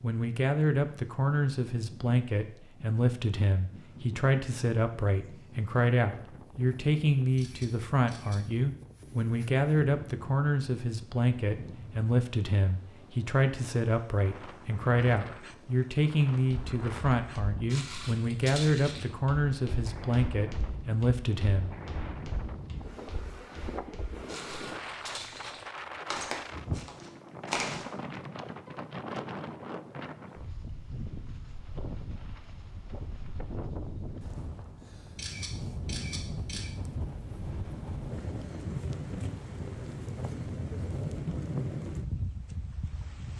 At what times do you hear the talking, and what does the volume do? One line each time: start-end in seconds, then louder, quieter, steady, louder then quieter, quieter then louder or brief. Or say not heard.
0.0-21.7 steady.